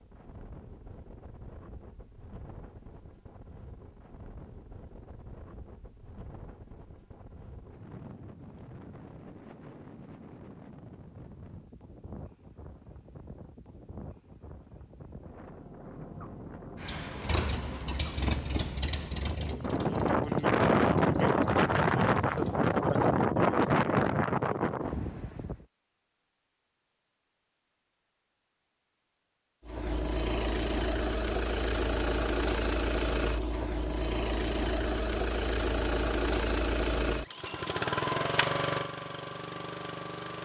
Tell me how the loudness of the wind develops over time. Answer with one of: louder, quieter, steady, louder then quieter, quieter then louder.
louder.